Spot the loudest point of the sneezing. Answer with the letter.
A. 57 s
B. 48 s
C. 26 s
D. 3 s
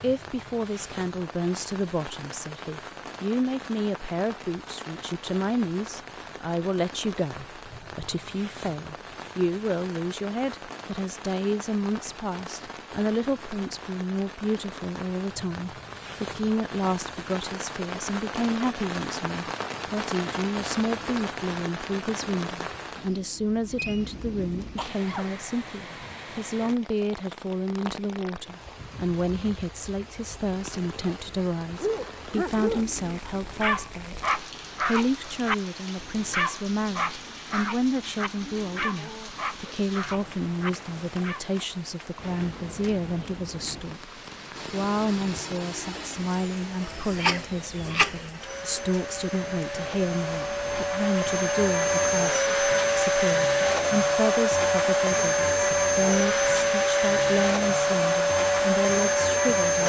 B.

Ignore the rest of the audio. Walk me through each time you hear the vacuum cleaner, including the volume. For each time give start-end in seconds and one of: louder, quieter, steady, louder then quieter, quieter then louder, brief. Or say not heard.
44.5-59.8 louder.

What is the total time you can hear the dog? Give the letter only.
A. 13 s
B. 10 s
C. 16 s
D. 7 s
B.